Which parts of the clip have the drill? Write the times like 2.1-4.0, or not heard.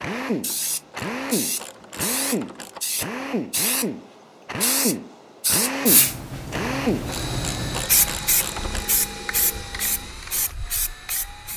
0.0-11.5.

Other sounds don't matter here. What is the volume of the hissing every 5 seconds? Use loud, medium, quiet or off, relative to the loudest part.
loud, loud, medium.